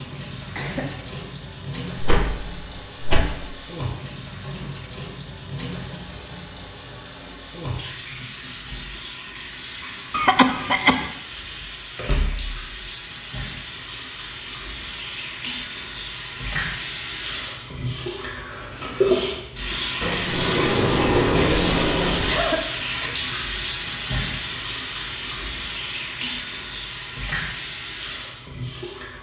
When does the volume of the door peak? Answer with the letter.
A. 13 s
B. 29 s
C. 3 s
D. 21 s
D.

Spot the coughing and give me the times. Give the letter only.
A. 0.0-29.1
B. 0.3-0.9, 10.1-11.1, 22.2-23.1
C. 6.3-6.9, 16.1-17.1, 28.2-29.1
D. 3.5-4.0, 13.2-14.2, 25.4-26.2
B.